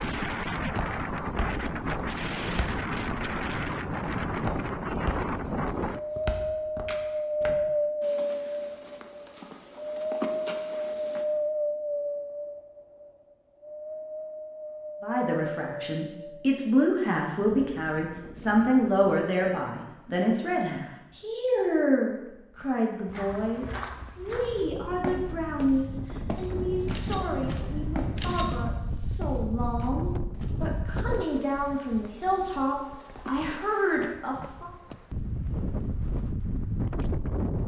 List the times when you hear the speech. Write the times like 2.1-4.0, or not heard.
15.0-34.7.